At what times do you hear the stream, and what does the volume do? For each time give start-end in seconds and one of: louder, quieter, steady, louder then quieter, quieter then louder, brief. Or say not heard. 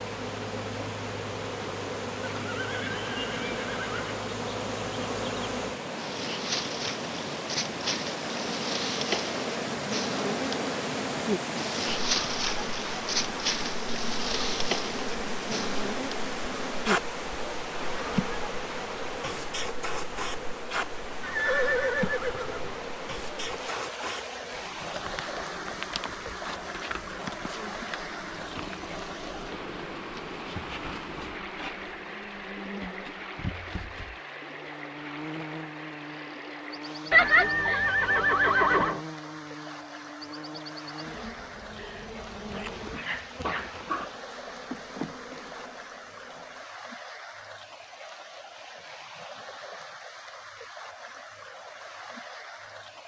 0.0-53.0 quieter.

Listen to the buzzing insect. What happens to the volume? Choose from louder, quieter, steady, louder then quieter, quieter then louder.
quieter.